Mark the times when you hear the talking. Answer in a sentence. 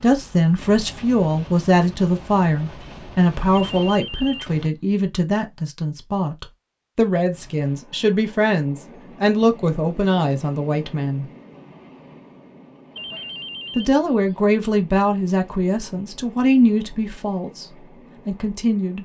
You can hear the talking from 0.0 to 11.2 s and from 13.8 to 19.0 s.